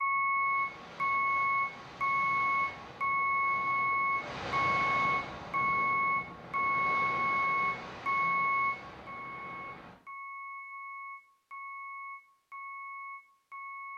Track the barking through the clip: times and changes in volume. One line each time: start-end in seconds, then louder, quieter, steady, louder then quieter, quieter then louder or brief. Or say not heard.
not heard.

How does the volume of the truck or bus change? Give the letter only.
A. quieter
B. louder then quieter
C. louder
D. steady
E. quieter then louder
A.